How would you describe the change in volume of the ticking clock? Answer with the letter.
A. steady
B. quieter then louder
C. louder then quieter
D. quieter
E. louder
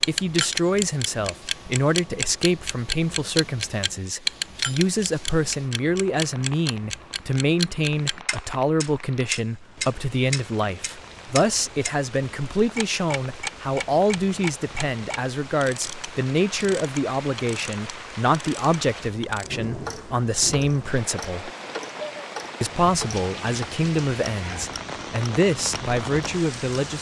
D.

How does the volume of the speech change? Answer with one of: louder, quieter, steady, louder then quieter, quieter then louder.
steady.